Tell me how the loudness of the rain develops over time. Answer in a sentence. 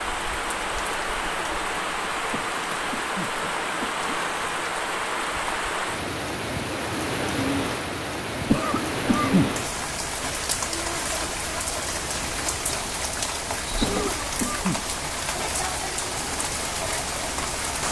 The volume of the rain stays about the same.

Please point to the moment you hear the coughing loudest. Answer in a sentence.
The volume of the coughing peaks at 9 seconds.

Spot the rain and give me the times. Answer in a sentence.
You can hear the rain from 0.0 to 17.8 s.